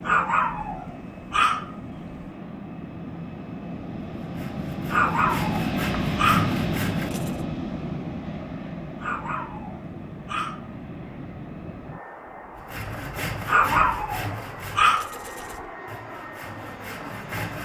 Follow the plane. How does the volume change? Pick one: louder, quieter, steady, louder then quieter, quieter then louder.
louder then quieter.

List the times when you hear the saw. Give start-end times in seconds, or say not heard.
4.2-7.5, 12.6-17.5.